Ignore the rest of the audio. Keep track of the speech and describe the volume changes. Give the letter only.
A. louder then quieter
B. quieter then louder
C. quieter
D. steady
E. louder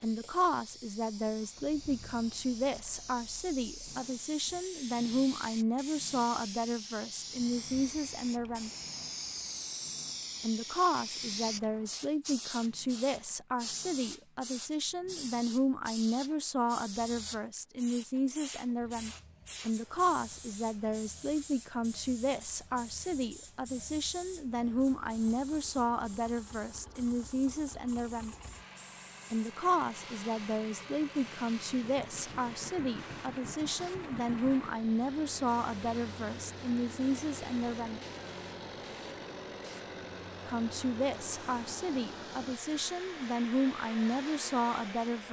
D.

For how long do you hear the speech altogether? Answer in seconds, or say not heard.
40 s.